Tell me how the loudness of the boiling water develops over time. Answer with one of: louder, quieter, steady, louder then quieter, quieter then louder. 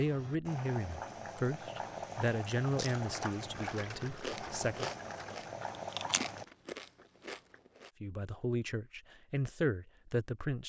steady.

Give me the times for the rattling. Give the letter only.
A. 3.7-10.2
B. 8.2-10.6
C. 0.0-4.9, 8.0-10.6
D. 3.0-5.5
D.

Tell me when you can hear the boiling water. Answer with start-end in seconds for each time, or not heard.
0.0-6.5.